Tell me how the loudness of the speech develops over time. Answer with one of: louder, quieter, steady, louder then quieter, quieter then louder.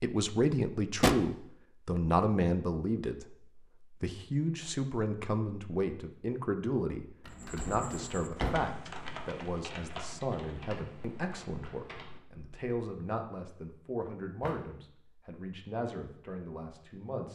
quieter.